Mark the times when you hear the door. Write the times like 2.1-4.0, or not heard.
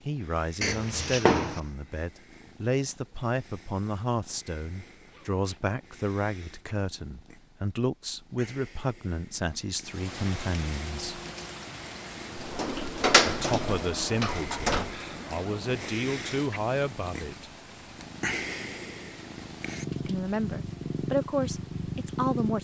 0.6-1.6, 12.3-14.9.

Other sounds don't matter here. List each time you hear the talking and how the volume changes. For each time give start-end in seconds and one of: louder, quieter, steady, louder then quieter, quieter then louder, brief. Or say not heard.
0.1-11.2 steady
13.2-17.5 quieter then louder
20.1-22.5 brief.